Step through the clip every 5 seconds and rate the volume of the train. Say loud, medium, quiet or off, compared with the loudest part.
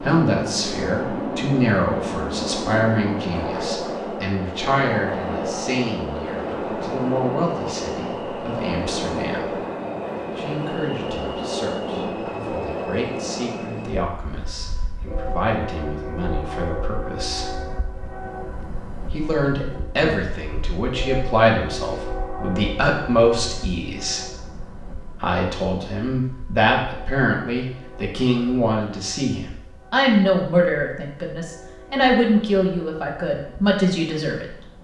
loud, loud, loud, medium, medium, quiet, quiet.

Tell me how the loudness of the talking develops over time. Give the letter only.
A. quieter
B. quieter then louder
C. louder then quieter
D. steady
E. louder
B.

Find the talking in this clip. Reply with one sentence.
The talking can be heard from 0.0 to 9.7 s, from 10.3 to 17.5 s, from 19.1 to 24.2 s and from 25.2 to 34.8 s.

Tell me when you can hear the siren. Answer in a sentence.
You can't hear the siren here.